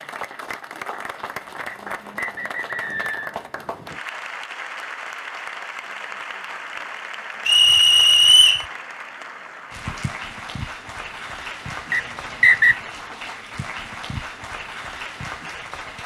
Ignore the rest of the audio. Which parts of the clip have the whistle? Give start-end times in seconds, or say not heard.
1.6-3.4, 7.5-8.7, 11.9-12.8.